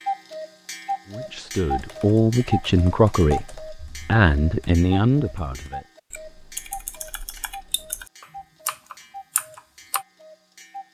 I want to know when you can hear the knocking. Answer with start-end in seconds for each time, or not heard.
not heard.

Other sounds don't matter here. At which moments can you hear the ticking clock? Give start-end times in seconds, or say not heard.
0.0-10.8.